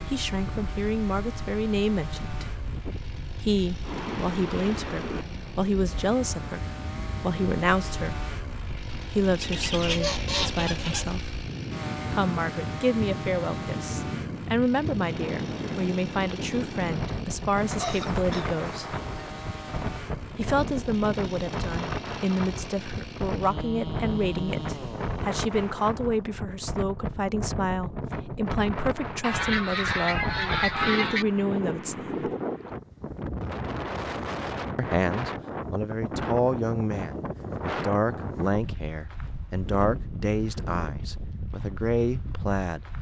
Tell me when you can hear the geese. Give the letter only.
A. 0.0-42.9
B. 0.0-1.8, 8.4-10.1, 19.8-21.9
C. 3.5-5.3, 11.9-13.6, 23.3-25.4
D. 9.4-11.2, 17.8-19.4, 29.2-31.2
D.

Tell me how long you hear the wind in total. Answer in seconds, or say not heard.
43 s.